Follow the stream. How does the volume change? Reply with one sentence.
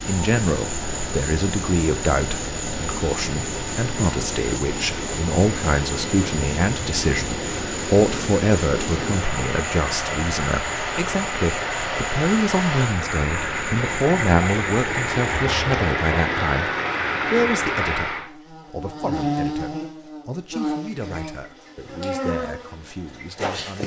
The volume of the stream goes up.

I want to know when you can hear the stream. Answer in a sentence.
The stream can be heard from 0.0 to 18.3 s.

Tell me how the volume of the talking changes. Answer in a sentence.
The loudness of the talking goes down.